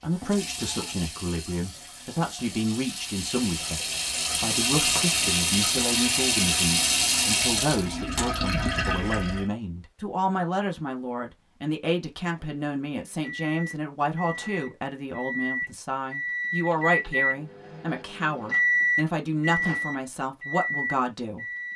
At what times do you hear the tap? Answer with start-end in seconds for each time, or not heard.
0.0-9.4.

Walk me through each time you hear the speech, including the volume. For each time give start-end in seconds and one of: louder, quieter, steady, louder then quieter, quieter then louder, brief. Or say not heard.
0.0-21.4 steady.